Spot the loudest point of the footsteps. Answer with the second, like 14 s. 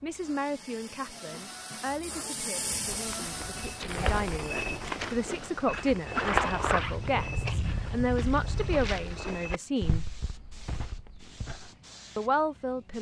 6 s.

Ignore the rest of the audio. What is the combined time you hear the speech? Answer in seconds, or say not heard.
11 s.